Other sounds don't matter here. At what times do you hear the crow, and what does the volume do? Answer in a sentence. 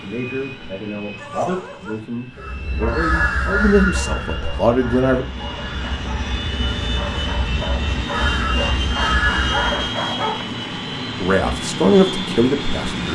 You can hear the crow from 2.3 to 9.8 s, getting quieter then louder.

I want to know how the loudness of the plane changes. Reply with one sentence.
The loudness of the plane goes up.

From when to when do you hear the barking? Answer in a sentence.
You can hear the barking from 1.1 to 10.6 s.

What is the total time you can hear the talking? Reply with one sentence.
You can hear the talking for 7 seconds altogether.